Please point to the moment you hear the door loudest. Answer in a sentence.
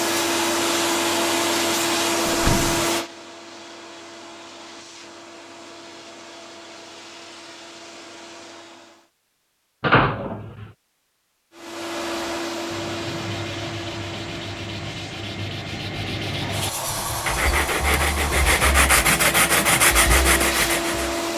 The volume of the door peaks at 10 seconds.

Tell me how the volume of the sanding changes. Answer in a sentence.
The loudness of the sanding goes up.